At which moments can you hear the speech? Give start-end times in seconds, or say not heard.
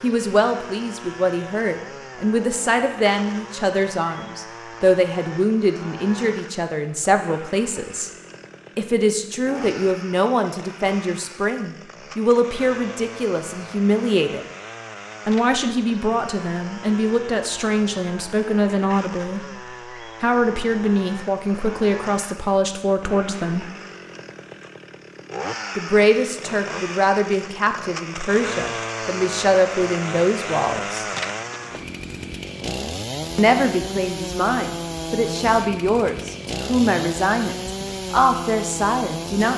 0.0-8.1, 8.8-14.4, 15.2-19.4, 20.2-23.7, 25.8-31.1, 33.4-39.5.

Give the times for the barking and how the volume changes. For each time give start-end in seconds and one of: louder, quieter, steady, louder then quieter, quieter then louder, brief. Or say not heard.
not heard.